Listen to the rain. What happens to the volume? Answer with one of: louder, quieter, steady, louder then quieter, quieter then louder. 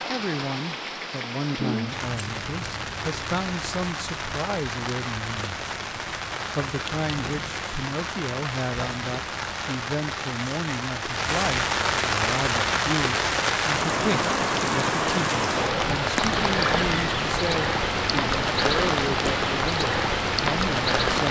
louder.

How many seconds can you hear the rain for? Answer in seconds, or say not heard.
21 s.